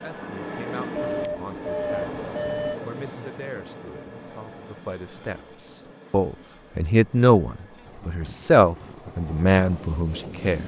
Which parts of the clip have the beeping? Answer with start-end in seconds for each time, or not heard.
0.9-2.8.